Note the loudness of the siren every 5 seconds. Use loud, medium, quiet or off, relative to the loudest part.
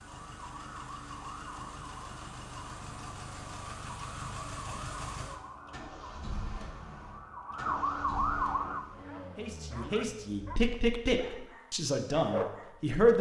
medium, loud, off.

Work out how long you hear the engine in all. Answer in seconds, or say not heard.
11 s.